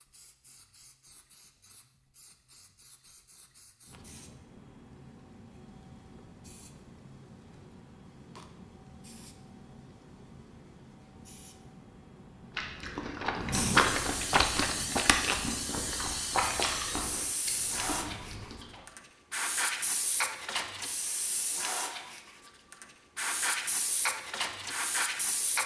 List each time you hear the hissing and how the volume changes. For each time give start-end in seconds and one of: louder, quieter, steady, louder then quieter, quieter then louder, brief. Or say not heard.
0.0-25.6 louder.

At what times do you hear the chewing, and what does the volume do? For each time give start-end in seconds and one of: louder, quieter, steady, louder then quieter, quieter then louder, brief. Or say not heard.
12.6-18.8 quieter.